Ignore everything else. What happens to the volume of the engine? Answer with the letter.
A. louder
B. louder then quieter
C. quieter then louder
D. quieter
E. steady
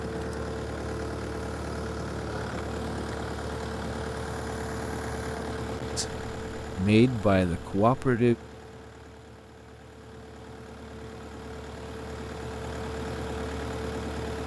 C.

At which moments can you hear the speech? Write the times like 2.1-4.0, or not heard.
6.0-8.3.